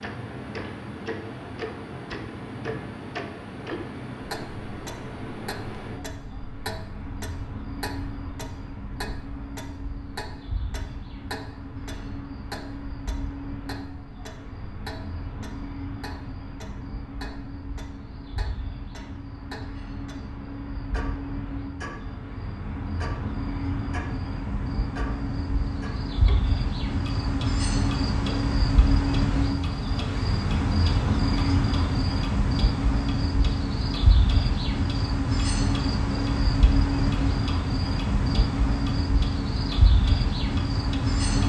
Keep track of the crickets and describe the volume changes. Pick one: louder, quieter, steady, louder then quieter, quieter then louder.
louder.